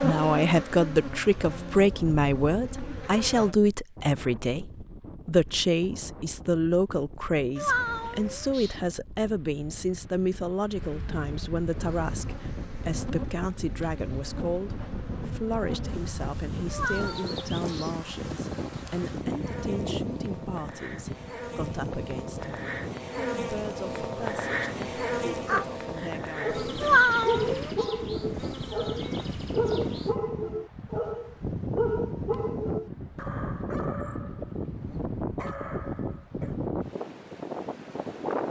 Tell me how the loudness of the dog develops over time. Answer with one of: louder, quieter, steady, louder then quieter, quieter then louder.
quieter.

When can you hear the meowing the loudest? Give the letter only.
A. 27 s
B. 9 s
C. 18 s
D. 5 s
A.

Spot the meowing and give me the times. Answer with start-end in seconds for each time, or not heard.
7.5-8.8, 16.7-17.9, 26.8-27.7.